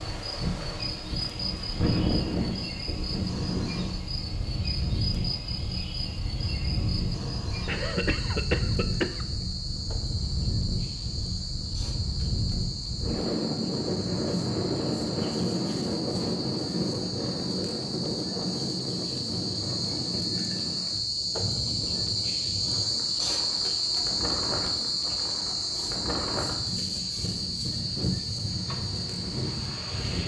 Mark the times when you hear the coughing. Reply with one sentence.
You can hear the coughing from 7.7 to 9.2 s.